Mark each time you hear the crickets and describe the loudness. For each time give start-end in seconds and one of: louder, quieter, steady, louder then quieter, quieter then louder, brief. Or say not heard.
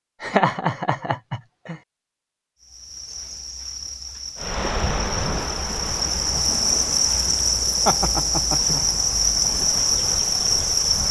2.6-11.0 louder.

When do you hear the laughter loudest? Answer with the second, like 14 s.
1 s.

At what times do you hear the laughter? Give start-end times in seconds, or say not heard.
0.2-1.8, 7.8-8.8.